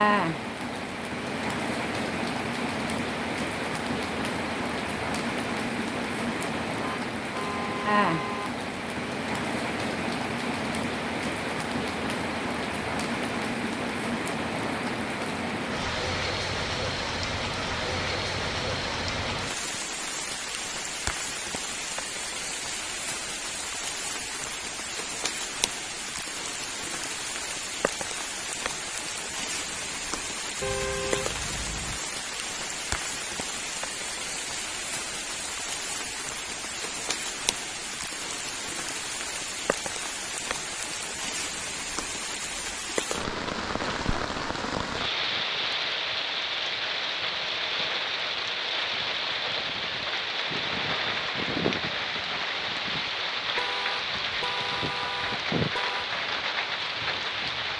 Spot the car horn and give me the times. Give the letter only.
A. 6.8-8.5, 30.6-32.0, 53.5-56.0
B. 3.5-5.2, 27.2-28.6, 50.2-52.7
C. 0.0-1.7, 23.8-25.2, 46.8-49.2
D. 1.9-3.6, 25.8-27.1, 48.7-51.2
A.